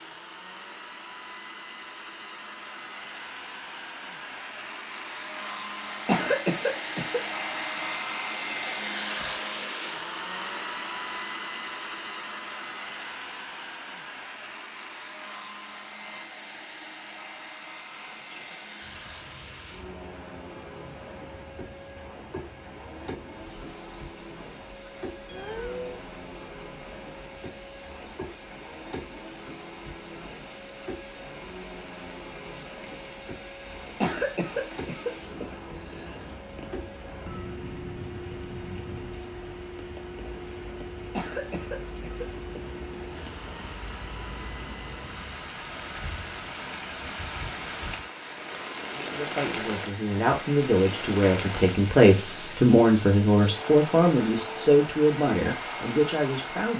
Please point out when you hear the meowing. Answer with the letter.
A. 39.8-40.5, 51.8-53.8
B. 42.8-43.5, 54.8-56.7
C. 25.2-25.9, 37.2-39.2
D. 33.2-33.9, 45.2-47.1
C.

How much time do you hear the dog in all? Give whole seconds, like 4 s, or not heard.
not heard.